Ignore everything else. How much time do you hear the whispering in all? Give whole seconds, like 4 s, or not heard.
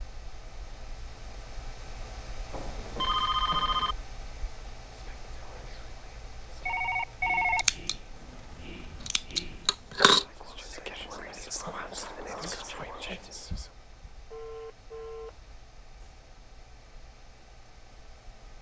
9 s.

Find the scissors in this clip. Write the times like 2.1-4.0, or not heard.
7.5-8.0, 8.6-10.2.